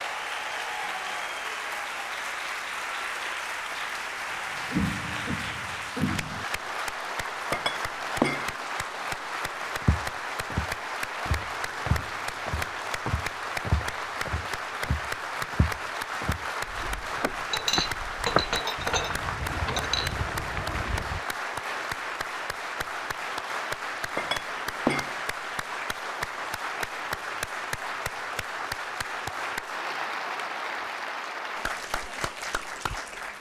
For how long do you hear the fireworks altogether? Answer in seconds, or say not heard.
not heard.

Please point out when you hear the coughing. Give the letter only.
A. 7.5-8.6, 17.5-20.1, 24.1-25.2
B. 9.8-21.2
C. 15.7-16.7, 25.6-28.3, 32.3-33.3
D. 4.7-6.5
D.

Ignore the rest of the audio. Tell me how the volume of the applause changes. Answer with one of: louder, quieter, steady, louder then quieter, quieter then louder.
steady.